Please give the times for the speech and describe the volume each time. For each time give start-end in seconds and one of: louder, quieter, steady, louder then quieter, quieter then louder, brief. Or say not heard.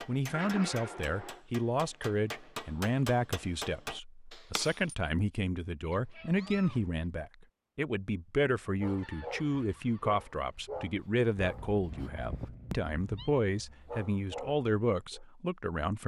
0.1-16.0 steady.